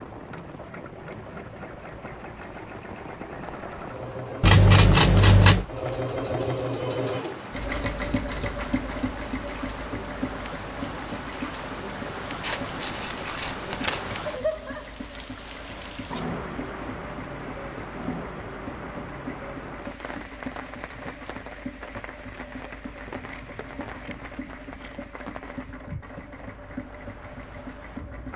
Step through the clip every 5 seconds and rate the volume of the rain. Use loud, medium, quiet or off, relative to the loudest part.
medium, medium, loud, loud, medium, medium.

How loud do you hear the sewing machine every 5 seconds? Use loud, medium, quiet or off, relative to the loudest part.
medium, loud, medium, medium, medium, medium.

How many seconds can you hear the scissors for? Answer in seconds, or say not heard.
5 s.